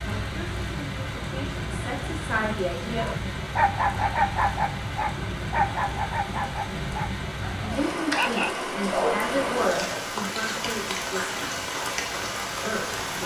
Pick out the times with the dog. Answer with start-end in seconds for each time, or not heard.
3.0-10.1.